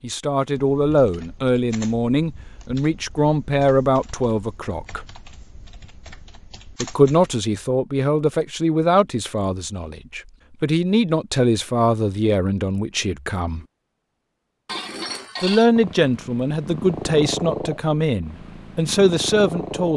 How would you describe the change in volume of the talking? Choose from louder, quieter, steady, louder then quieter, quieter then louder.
steady.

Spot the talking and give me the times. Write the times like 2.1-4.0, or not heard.
0.0-5.0, 6.8-13.7, 15.4-19.9.